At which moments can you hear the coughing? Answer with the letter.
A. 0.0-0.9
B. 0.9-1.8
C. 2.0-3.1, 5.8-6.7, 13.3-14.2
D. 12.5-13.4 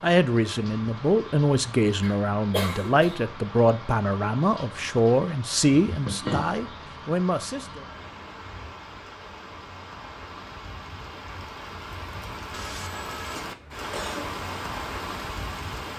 C.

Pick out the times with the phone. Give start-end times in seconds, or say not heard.
12.5-13.4.